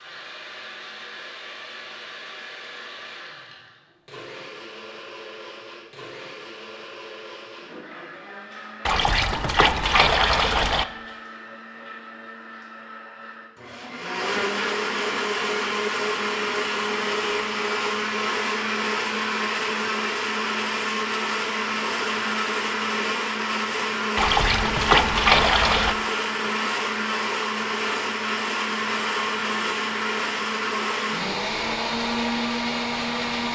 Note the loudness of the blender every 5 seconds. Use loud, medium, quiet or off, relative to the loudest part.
quiet, quiet, medium, loud, loud, loud, loud.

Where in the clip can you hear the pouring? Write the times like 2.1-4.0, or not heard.
8.8-10.8, 24.1-25.9.